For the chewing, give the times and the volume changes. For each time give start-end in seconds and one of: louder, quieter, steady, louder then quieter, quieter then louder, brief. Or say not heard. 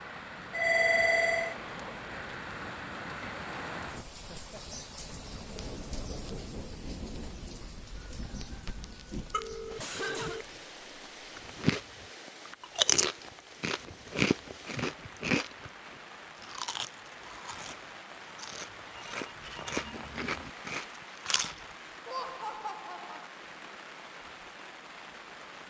11.3-11.8 brief
12.4-21.6 quieter then louder.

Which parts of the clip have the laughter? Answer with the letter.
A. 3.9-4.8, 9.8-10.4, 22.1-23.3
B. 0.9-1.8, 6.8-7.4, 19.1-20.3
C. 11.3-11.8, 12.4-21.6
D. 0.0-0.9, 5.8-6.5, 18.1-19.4
A.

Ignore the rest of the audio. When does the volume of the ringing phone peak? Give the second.
1 s.